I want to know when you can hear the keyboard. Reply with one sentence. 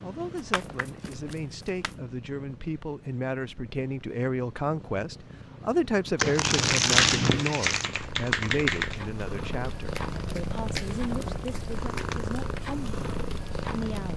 You can hear the keyboard from 6.6 to 9.1 s.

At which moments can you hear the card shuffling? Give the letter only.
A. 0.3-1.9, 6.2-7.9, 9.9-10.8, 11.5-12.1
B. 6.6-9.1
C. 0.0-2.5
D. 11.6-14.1
A.